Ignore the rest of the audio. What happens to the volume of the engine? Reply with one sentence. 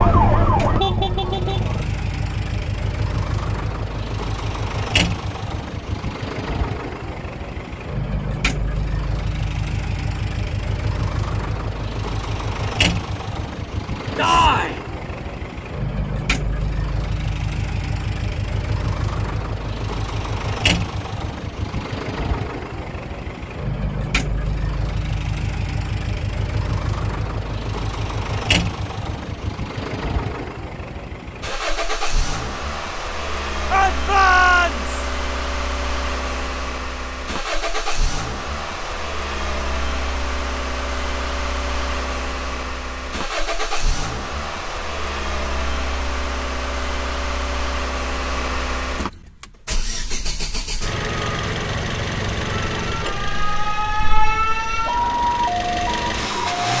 The loudness of the engine stays about the same.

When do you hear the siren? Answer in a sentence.
The siren can be heard from 0.0 to 1.9 s and from 52.7 to 56.6 s.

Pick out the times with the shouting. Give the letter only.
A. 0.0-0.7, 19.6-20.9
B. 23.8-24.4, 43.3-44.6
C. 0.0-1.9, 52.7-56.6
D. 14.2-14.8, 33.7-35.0
D.